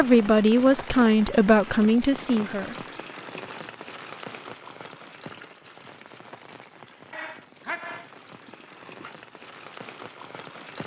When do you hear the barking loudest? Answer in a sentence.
The loudest moment of the barking is at 8 seconds.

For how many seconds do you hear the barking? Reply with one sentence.
You can hear the barking for 2 seconds altogether.